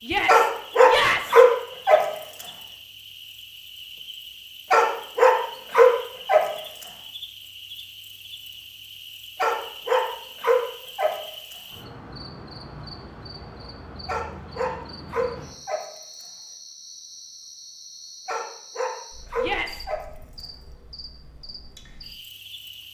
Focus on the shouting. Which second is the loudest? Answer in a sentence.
The loudest moment of the shouting is at 1 second.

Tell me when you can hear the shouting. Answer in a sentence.
You can hear the shouting from 0.0 to 1.4 s and from 19.4 to 19.9 s.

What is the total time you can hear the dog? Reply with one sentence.
You can hear the dog for 11 seconds altogether.